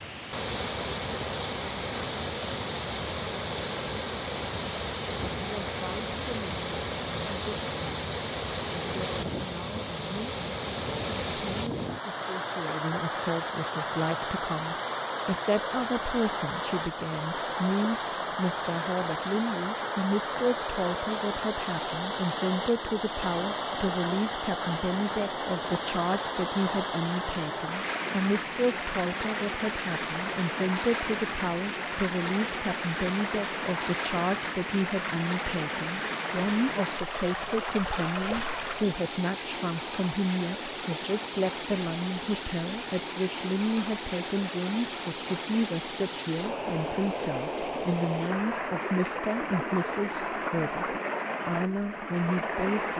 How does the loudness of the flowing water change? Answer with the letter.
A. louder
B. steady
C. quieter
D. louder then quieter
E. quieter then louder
B.